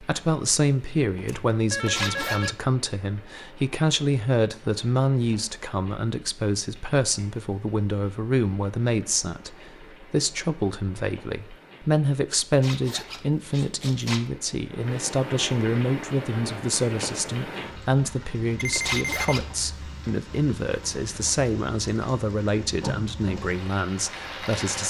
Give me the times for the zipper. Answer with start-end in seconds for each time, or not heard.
1.9-2.5, 12.5-14.2, 18.8-19.4.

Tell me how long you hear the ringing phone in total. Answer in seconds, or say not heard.
2 s.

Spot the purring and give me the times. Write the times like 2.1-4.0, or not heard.
not heard.